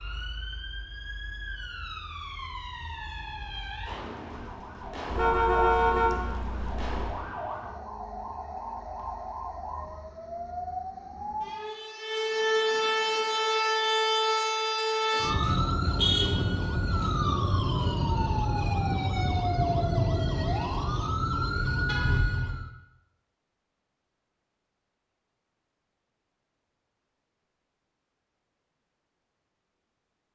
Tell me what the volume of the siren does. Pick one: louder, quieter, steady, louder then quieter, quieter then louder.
louder.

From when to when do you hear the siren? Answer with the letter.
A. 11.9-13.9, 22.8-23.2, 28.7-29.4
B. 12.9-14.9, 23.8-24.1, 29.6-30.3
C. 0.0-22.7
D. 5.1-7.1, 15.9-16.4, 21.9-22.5
C.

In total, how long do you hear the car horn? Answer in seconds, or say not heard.
3 s.